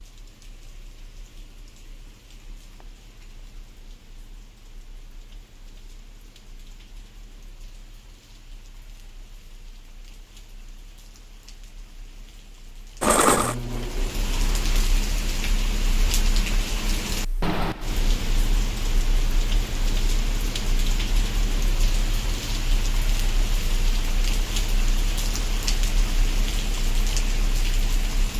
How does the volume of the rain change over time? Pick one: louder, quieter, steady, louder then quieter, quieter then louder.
louder.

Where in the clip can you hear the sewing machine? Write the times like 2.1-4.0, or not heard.
13.0-14.9.